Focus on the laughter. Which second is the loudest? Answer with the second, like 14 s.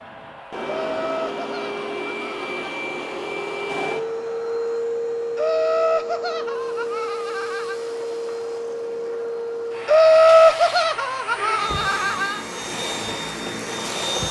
10 s.